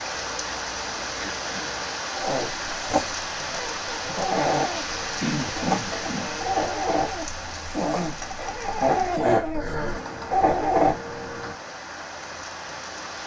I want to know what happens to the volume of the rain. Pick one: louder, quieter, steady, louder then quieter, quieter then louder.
quieter.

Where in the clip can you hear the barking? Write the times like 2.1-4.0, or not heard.
2.1-10.9.